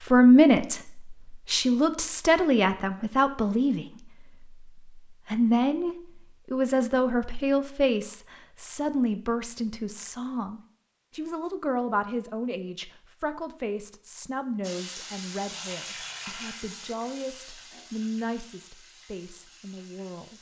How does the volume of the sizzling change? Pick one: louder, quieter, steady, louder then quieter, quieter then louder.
quieter.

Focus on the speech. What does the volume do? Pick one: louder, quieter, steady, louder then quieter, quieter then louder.
quieter.